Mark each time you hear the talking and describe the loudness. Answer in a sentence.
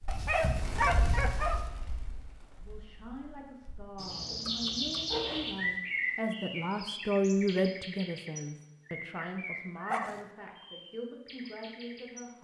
You can hear the talking from 2.6 to 12.3 s, getting louder then quieter.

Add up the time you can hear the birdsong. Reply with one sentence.
You can hear the birdsong for 12 seconds altogether.